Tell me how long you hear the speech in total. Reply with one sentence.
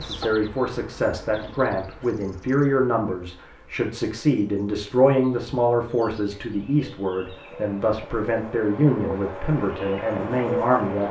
You can hear the speech for 11 seconds altogether.